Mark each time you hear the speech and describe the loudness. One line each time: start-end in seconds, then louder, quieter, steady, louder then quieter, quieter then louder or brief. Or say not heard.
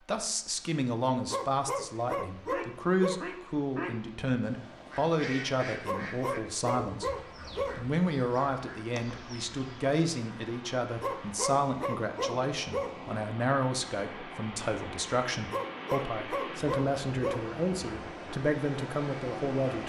0.1-19.8 steady.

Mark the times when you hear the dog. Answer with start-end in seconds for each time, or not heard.
1.3-3.2, 5.8-7.8, 11.0-12.9, 15.5-17.4.